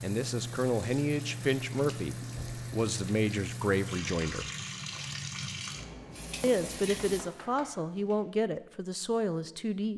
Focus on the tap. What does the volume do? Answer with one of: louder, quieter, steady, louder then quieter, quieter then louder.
steady.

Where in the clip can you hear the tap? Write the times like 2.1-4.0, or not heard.
0.0-7.3.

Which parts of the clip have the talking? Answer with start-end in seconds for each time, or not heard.
0.0-4.5, 6.4-9.9.